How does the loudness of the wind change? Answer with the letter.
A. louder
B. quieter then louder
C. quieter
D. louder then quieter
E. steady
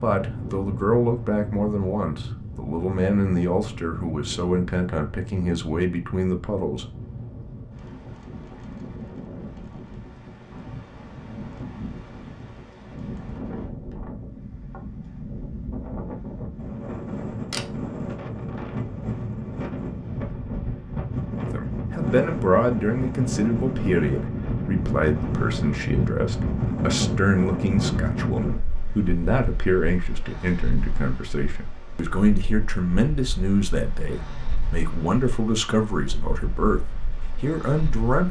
D.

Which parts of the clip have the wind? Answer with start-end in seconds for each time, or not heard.
0.0-38.2.